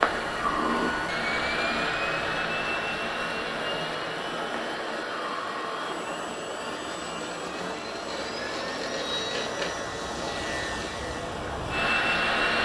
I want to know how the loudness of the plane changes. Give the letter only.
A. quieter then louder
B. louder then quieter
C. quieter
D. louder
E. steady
A.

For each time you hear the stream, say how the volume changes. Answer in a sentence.
You can hear the stream from 0.0 to 12.6 s, at a steady volume.